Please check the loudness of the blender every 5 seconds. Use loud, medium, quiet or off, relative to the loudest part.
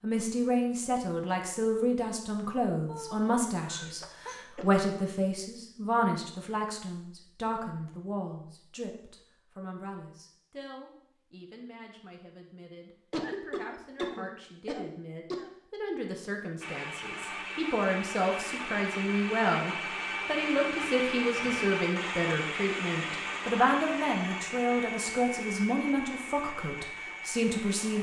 off, off, off, loud, loud, medium.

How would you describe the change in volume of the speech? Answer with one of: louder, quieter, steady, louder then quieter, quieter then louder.
quieter then louder.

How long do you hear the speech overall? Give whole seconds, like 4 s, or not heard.
28 s.